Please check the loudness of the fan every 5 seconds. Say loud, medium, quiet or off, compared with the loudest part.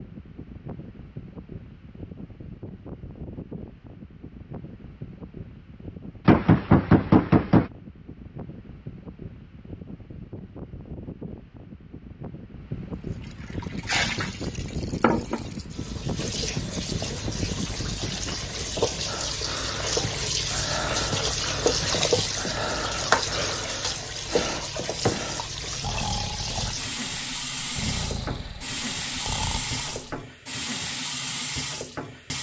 medium, medium, loud, loud, off, off, off.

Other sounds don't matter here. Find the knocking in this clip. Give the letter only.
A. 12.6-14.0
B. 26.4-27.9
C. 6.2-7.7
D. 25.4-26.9
C.